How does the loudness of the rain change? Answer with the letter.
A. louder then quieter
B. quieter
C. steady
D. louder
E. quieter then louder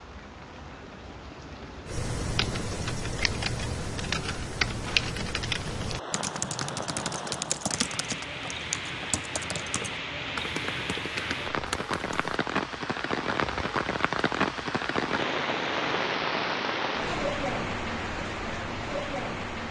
D.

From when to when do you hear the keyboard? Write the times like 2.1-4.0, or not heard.
1.9-12.3.